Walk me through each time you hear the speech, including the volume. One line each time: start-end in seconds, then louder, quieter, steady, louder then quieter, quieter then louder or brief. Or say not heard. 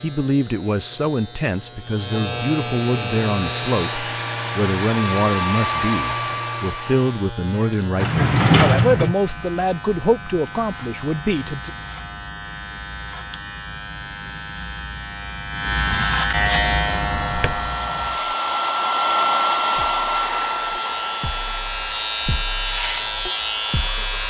0.0-11.7 steady.